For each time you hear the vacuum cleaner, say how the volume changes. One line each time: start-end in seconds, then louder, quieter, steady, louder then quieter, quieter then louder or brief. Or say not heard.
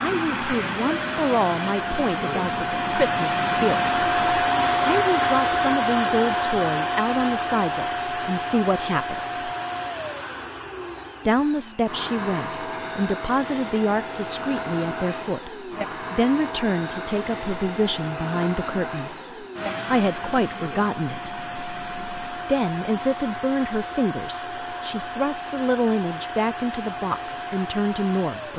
0.0-28.5 quieter.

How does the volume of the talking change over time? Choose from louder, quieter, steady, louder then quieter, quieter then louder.
steady.